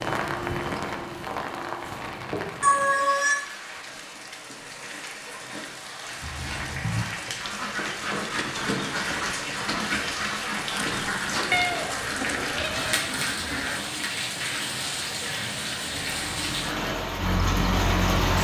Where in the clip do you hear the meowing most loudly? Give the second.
3 s.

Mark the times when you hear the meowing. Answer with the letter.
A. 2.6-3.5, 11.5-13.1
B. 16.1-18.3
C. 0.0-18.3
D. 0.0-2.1
A.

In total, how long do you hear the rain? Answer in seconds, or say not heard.
18 s.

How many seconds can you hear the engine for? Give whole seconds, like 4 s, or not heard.
2 s.